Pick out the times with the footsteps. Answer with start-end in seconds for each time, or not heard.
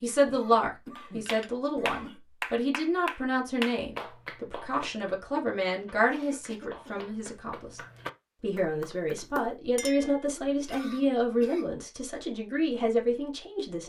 not heard.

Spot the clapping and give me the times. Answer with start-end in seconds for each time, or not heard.
0.9-9.6.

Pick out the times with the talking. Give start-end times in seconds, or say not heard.
0.0-7.8, 8.4-13.8.